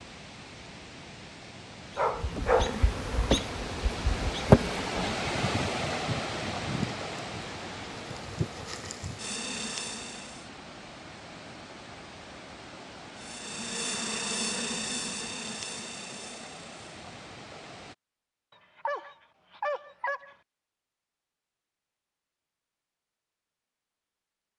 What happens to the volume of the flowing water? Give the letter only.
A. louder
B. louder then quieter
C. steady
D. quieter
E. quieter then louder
B.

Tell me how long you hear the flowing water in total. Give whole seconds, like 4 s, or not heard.
18 s.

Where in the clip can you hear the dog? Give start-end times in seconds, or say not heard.
1.9-2.8, 18.8-20.4.